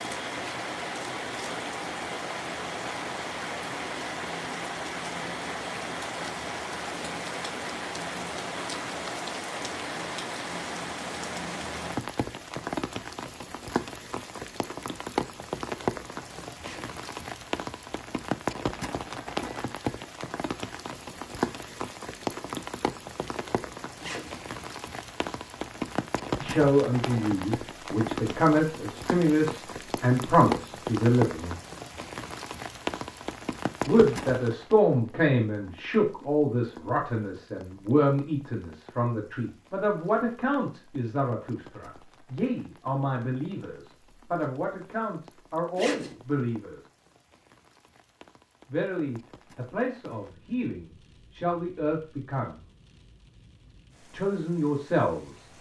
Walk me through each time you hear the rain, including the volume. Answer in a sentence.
You can hear the rain from 0.0 to 55.5 s, getting quieter.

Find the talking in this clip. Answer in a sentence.
You can hear the talking from 26.4 to 31.6 s, from 33.9 to 46.8 s, from 48.6 to 52.6 s and from 54.1 to 55.5 s.